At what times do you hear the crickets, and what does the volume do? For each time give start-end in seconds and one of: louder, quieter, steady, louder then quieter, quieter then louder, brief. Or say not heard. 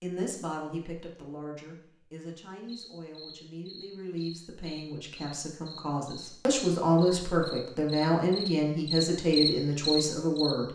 2.6-10.6 louder.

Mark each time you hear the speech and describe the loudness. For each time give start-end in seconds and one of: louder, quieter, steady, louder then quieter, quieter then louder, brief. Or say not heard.
0.0-10.6 louder.